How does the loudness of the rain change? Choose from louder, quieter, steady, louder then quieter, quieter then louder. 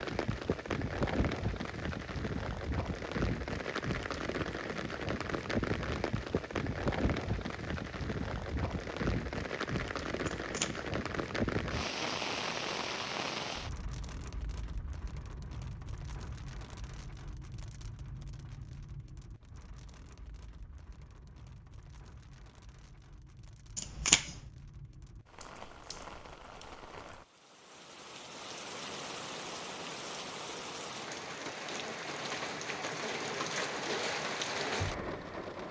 quieter then louder.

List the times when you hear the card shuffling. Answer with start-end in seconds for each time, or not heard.
10.4-10.8, 23.8-24.4.